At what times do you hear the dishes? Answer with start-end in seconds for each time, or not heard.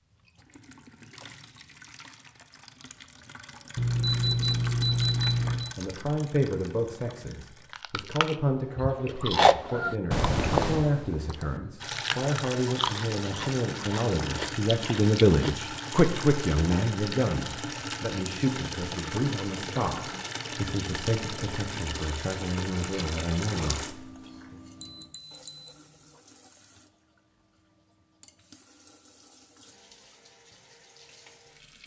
not heard.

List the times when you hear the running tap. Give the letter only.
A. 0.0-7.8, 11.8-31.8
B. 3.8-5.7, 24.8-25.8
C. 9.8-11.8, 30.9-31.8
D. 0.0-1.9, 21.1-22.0
A.